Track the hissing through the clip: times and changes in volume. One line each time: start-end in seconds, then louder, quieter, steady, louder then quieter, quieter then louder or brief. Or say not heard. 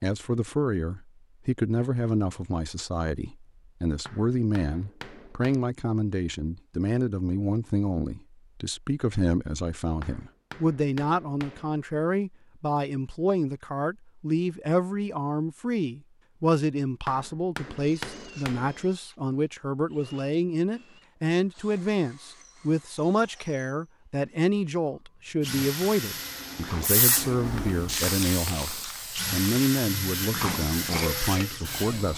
26.1-32.1 quieter.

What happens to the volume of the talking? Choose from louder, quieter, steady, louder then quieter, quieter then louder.
steady.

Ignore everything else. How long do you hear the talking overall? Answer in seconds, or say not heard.
32 s.